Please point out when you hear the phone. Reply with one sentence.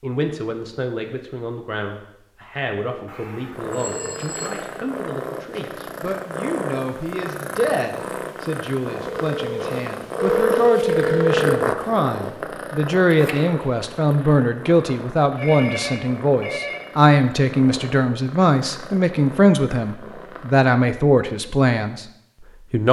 The phone can be heard from 3.0 to 4.5 s, from 9.1 to 11.7 s and from 15.3 to 16.8 s.